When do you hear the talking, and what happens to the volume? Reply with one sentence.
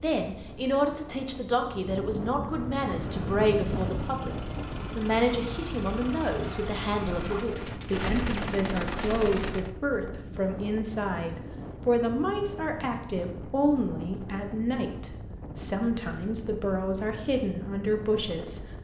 The talking can be heard from 0.0 to 18.6 s, at a steady volume.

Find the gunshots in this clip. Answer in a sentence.
You can hear the gunshots from 7.0 to 9.7 s.